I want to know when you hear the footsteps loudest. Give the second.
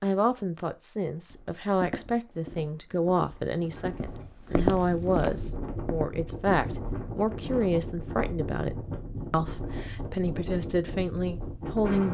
5 s.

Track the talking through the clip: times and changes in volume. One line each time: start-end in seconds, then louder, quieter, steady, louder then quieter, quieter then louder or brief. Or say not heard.
0.0-12.0 steady.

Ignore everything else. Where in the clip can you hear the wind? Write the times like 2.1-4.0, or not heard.
3.5-12.0.